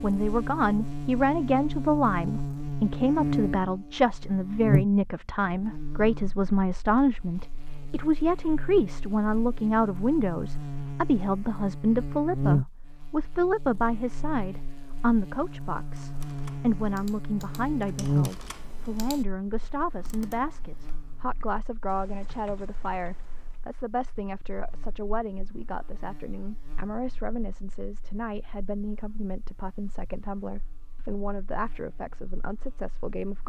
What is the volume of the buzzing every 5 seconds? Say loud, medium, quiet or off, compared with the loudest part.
loud, quiet, loud, loud, quiet, quiet, quiet.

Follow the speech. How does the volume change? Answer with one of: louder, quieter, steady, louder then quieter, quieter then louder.
quieter.